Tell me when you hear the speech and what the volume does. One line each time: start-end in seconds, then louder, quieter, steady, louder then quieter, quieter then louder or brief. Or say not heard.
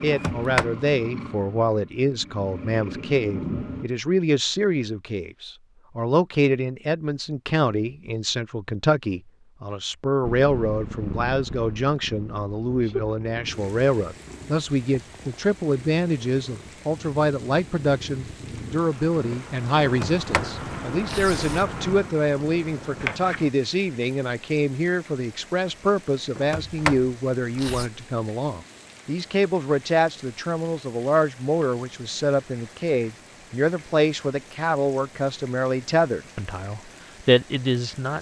0.0-38.1 steady.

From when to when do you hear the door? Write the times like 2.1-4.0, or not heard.
0.1-0.7, 19.8-21.6, 26.4-27.9.